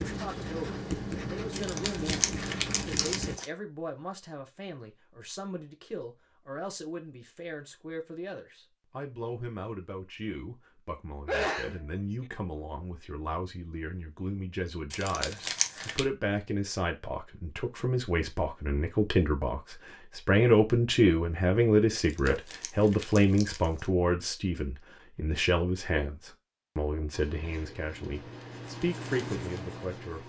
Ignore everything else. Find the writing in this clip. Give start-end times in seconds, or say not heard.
0.0-3.4, 27.1-30.2.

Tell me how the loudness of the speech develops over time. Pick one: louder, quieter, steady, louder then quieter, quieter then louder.
louder then quieter.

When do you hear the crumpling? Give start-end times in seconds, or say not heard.
1.5-3.5, 14.9-16.0, 21.9-23.9.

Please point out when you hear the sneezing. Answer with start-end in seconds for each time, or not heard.
11.2-12.3, 27.4-27.9.